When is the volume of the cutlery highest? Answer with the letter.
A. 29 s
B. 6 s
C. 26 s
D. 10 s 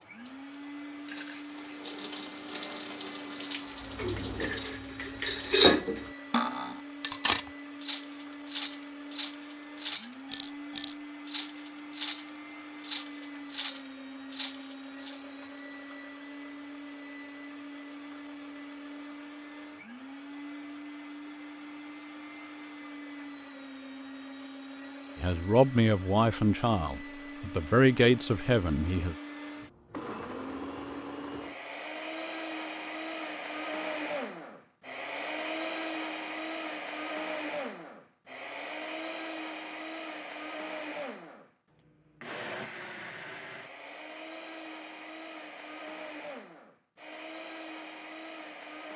B.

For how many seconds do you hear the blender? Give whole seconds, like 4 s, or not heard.
49 s.